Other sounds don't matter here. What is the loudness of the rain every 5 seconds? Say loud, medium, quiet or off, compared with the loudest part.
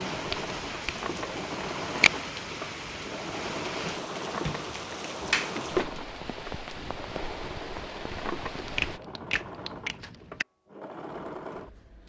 loud, loud, off.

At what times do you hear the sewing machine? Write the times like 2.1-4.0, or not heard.
0.0-12.0.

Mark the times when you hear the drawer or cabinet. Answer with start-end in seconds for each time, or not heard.
0.8-1.4, 4.2-6.0, 8.1-8.7.